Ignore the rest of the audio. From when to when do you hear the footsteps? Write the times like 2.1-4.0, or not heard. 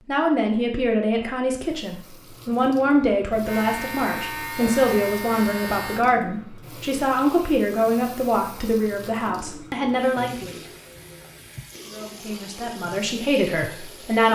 not heard.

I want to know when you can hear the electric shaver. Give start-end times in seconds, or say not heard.
3.5-6.0.